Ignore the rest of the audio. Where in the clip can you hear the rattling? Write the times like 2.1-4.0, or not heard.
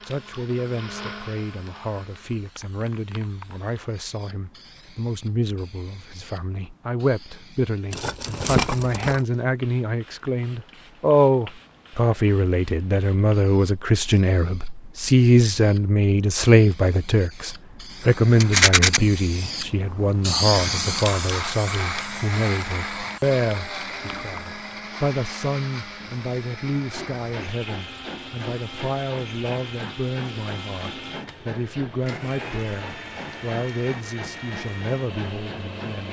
7.9-9.2, 18.4-19.0.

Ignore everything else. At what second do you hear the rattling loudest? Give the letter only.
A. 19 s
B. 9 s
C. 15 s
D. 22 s
A.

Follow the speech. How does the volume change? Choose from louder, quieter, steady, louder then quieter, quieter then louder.
louder then quieter.